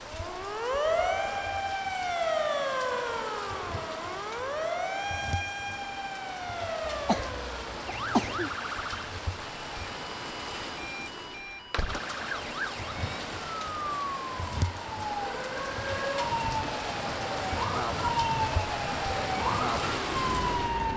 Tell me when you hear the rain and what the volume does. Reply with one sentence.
The rain can be heard from 0.0 to 20.9 s, getting louder.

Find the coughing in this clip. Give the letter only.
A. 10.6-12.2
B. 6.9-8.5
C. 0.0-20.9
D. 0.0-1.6
B.